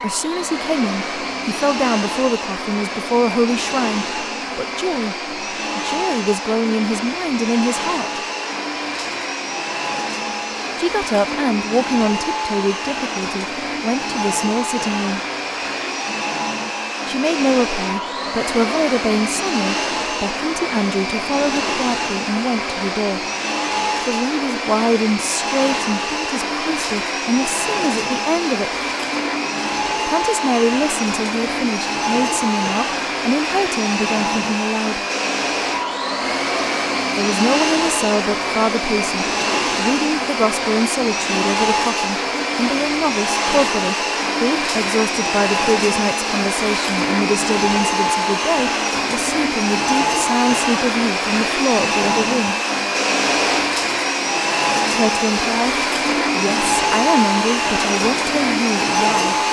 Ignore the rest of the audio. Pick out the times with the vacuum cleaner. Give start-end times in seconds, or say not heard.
0.0-59.4.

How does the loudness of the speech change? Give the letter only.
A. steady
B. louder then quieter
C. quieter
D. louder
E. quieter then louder
A.